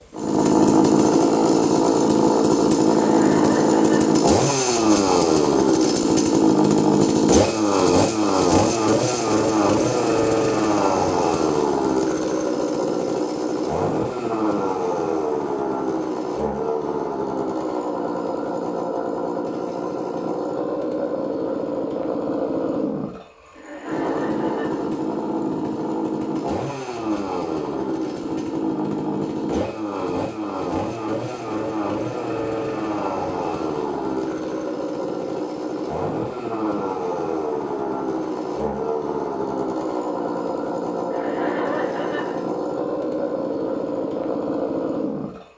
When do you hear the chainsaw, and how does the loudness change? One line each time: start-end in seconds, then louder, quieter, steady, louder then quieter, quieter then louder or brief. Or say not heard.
0.0-45.5 quieter.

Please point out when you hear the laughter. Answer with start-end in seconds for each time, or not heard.
2.9-4.2, 23.6-24.9, 41.1-42.5.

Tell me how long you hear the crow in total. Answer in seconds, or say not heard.
not heard.